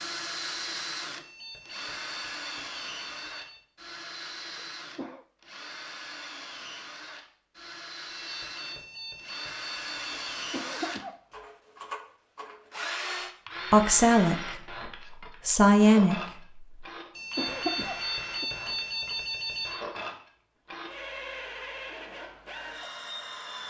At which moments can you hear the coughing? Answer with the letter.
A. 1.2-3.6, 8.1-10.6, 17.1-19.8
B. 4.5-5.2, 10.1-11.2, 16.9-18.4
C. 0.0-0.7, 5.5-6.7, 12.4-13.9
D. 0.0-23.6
B.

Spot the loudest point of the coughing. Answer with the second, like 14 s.
18 s.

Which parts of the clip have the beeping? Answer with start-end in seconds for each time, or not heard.
1.2-3.6, 8.1-10.6, 17.1-19.8.